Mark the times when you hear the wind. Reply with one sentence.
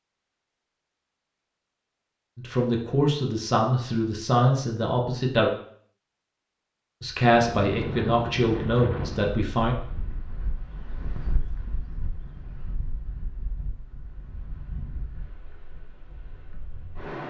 You can hear the wind from 7.3 to 17.2 s.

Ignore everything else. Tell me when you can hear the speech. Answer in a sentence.
The speech can be heard from 2.4 to 5.5 s and from 7.0 to 9.8 s.